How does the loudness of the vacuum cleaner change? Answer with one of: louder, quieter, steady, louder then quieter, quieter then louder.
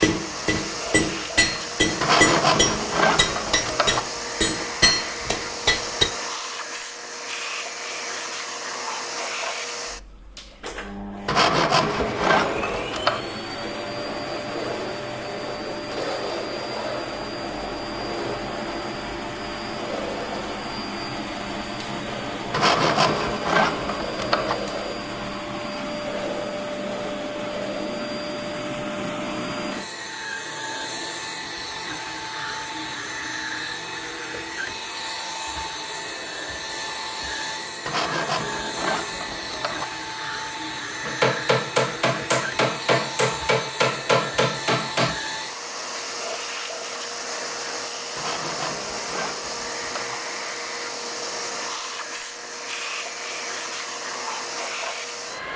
steady.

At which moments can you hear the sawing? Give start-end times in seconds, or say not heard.
2.0-4.0, 11.2-13.2, 22.5-24.6, 37.9-39.9, 48.1-50.2.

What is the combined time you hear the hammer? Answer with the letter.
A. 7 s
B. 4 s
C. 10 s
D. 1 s
C.